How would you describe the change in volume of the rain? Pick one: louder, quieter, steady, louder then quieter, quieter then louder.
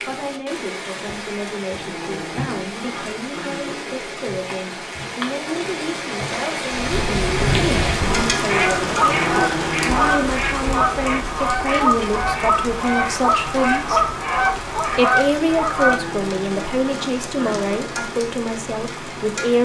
louder then quieter.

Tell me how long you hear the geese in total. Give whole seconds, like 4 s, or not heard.
9 s.